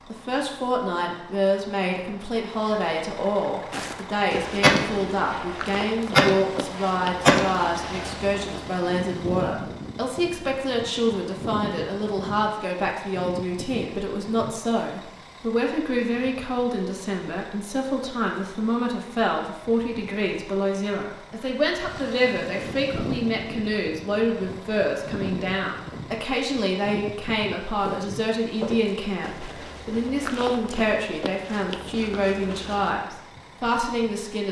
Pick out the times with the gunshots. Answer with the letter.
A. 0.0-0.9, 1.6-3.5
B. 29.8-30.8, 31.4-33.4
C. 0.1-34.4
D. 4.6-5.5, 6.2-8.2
D.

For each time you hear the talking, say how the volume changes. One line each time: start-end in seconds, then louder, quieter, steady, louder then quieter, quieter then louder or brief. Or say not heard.
0.1-34.4 steady.